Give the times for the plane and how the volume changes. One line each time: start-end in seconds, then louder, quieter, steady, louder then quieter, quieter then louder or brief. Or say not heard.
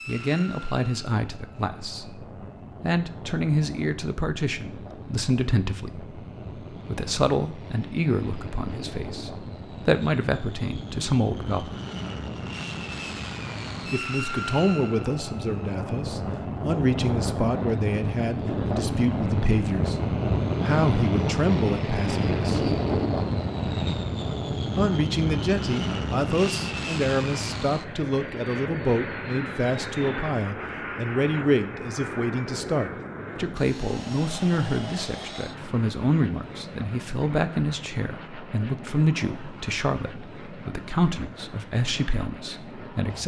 0.0-43.2 louder then quieter.